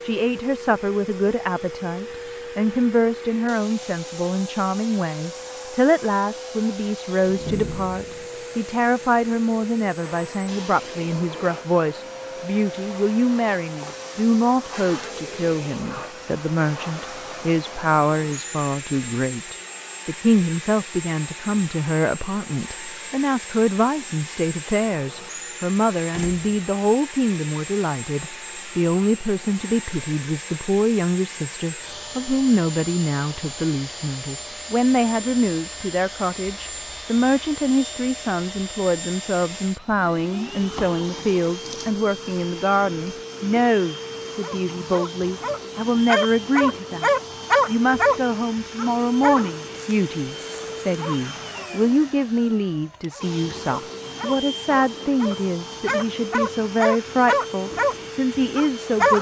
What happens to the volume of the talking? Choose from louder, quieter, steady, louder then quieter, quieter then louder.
steady.